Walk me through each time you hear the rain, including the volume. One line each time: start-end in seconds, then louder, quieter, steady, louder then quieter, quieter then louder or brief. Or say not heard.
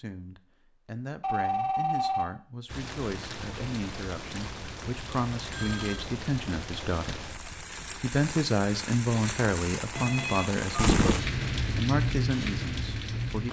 2.6-13.4 louder.